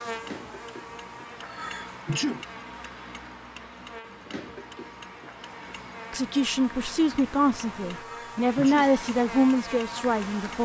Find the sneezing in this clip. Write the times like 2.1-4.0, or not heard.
1.4-2.5, 8.0-8.9.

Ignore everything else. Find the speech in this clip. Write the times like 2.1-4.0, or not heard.
6.1-10.5.